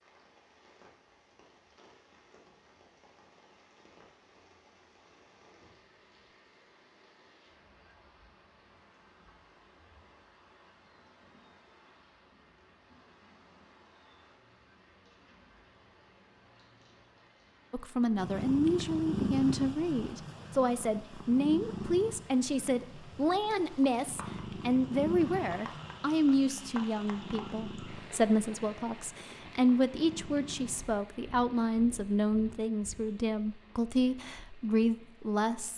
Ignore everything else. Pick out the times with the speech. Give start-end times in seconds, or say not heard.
17.7-35.7.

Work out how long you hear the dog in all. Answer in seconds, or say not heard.
not heard.